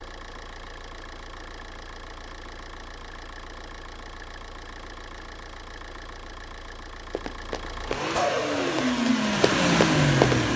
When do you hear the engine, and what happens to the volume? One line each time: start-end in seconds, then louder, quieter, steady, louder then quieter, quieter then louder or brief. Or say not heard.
0.0-10.5 louder.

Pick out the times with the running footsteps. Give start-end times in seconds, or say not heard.
7.0-10.5.